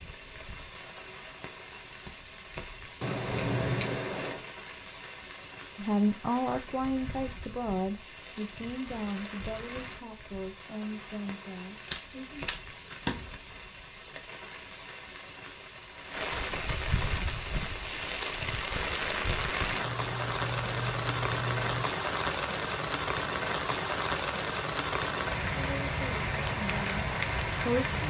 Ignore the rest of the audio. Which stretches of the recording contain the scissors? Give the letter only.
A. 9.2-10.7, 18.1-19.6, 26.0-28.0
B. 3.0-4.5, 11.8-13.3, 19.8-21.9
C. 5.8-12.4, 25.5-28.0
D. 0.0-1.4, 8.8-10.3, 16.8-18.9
B.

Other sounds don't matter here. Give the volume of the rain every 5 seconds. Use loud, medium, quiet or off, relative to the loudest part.
quiet, quiet, quiet, loud, loud, loud.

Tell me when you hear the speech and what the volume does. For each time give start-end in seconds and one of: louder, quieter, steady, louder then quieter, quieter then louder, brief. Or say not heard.
5.8-12.4 quieter
25.5-28.0 brief.